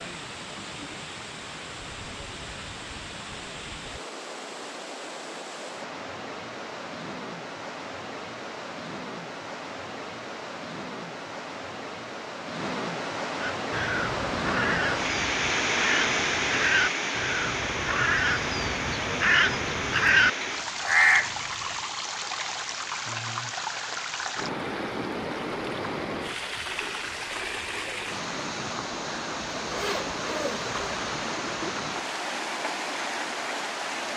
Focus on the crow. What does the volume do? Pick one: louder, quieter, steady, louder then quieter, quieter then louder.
louder.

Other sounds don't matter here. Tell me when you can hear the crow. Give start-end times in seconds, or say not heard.
13.4-21.8.